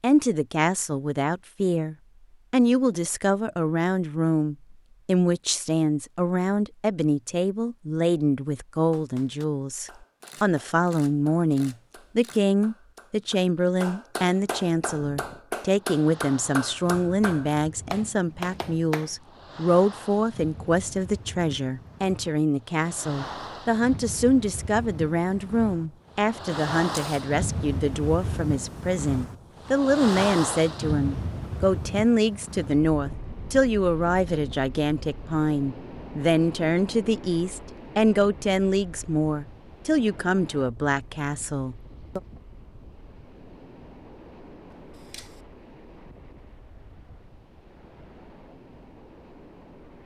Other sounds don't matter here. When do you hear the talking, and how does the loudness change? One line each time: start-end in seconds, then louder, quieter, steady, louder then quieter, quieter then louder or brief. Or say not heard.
0.0-42.2 steady.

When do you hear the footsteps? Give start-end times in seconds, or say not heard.
not heard.